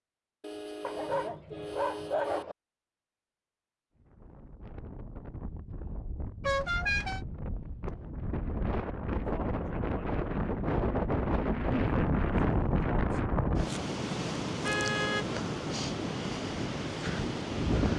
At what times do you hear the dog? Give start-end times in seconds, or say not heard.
0.8-2.5.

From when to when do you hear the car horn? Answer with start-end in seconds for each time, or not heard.
0.4-2.5, 6.4-7.2, 14.6-15.2.